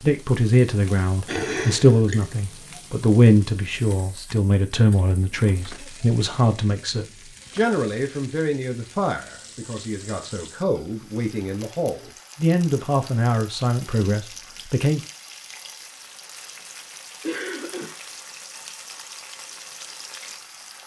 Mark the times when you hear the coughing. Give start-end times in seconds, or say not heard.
1.2-2.4, 17.2-18.0.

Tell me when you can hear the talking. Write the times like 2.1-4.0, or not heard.
0.0-15.0.